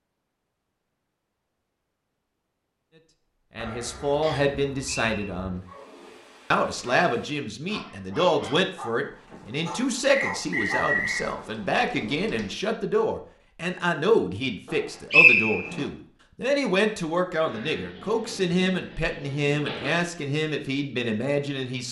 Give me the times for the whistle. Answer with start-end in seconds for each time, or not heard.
4.2-5.3, 10.1-11.2, 15.1-15.7.